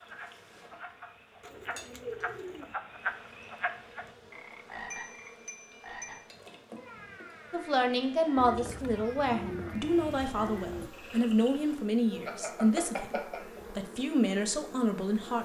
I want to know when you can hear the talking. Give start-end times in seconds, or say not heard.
7.5-15.4.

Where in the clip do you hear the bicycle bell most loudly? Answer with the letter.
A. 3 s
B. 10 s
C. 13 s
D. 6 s
C.